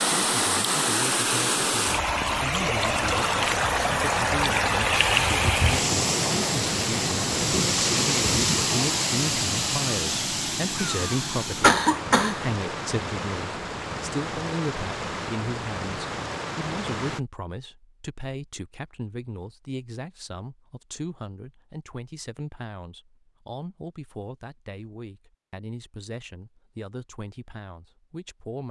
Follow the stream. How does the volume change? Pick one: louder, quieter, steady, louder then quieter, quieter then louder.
quieter.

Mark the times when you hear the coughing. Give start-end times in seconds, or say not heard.
10.8-12.4.